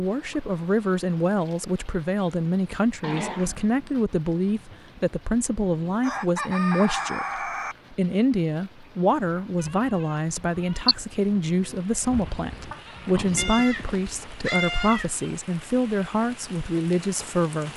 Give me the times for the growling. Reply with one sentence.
The growling can be heard from 3.0 to 3.8 s and from 12.2 to 13.5 s.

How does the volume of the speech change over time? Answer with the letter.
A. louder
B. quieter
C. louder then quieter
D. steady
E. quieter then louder
D.